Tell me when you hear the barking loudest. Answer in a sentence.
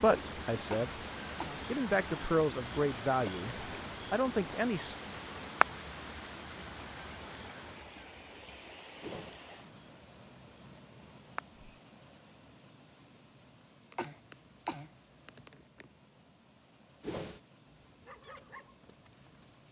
The loudest moment of the barking is at 18 seconds.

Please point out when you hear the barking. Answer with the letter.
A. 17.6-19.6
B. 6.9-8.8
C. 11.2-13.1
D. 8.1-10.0
A.